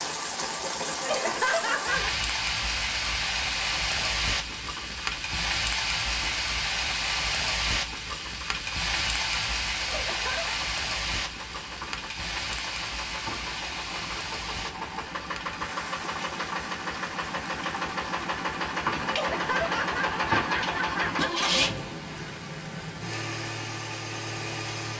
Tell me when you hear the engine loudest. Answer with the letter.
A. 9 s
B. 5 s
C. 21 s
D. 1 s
C.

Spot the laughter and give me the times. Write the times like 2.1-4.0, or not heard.
1.0-2.1, 9.8-10.6, 19.1-21.5.